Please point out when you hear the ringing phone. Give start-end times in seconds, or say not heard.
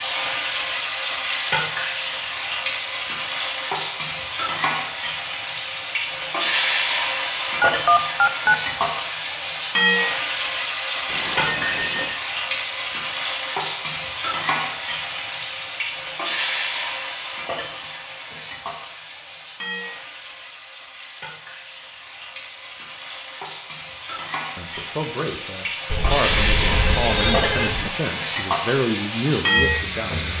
7.6-8.6, 11.1-12.2, 25.9-27.9.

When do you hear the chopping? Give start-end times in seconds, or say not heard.
not heard.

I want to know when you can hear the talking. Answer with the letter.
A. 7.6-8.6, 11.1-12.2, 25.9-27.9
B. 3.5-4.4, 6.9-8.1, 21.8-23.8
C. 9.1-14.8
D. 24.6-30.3
D.